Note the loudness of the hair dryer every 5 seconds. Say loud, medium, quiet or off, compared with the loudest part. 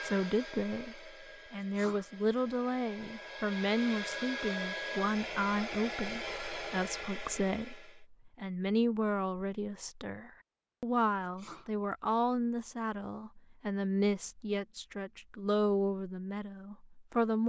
loud, loud, off, off.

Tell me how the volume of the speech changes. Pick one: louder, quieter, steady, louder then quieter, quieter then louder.
steady.